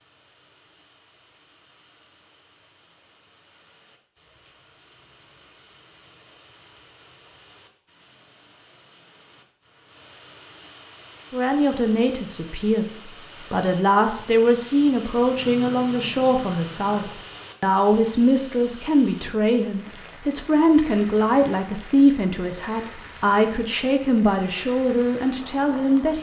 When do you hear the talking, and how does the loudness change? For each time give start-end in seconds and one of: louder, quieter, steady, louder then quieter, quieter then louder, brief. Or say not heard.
11.3-26.1 steady.